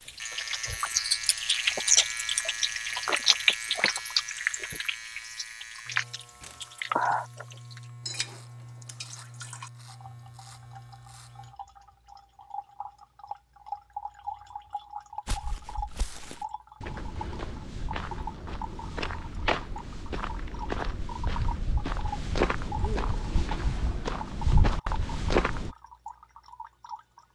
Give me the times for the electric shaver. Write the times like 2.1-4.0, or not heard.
0.0-11.6.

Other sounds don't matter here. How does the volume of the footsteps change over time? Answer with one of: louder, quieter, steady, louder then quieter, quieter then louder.
louder.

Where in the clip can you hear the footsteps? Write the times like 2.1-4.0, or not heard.
15.2-25.8.